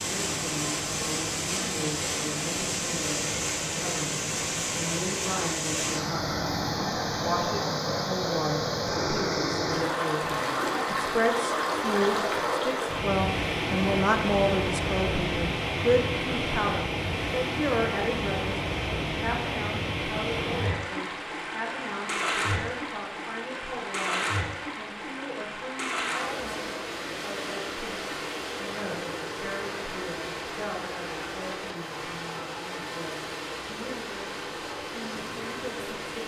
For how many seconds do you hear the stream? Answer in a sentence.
You can hear the stream for 36 seconds altogether.